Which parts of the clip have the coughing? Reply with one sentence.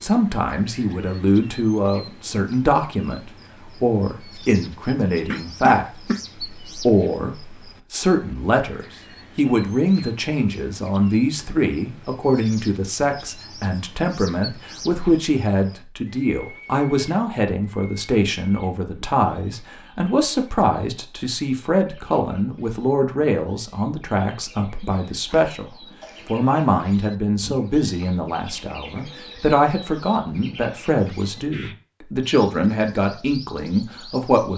You can hear the coughing from 5.3 to 6.2 s and from 24.9 to 26.4 s.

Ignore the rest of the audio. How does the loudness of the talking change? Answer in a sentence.
The volume of the talking stays about the same.